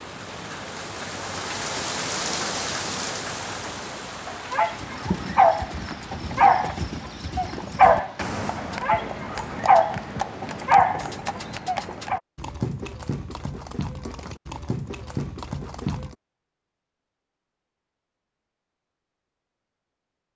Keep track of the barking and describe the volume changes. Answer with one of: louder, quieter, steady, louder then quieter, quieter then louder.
steady.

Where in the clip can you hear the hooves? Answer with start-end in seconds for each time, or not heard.
4.7-16.1.